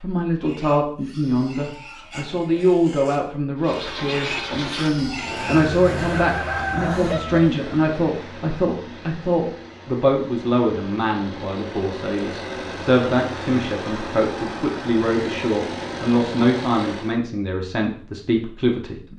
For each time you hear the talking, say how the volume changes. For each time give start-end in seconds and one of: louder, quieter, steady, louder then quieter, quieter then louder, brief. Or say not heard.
0.0-19.1 steady.